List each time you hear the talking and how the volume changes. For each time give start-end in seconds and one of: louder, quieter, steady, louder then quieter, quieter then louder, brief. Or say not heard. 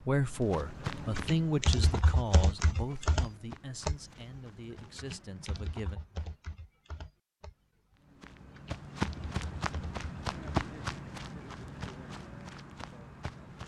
0.0-6.0 quieter.